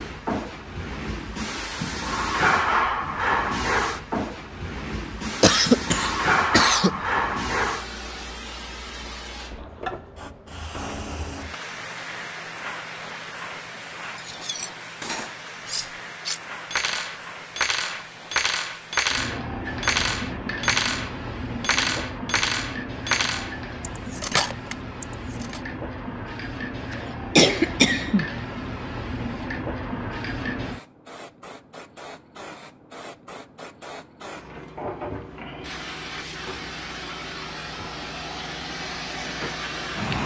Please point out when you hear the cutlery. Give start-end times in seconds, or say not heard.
14.1-25.6.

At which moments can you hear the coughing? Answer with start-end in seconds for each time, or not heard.
5.4-7.0, 26.9-28.2.